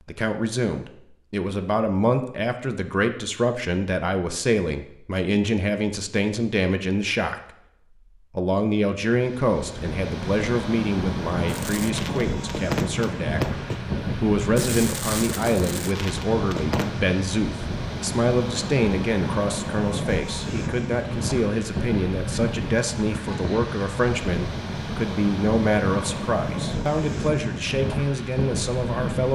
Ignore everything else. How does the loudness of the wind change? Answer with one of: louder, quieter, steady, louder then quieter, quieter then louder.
steady.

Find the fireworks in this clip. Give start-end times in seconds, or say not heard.
11.4-17.0.